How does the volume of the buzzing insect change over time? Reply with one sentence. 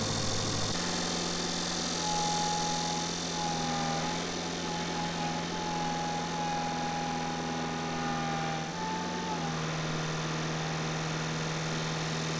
The volume of the buzzing insect goes down.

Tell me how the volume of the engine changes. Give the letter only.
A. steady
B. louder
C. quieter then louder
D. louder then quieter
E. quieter
A.